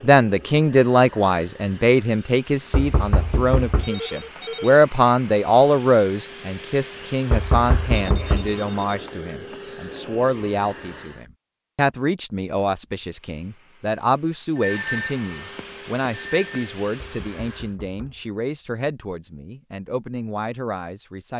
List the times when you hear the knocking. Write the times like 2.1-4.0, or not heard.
2.7-3.9, 7.3-8.6, 17.0-18.2.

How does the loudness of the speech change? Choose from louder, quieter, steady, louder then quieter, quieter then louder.
quieter.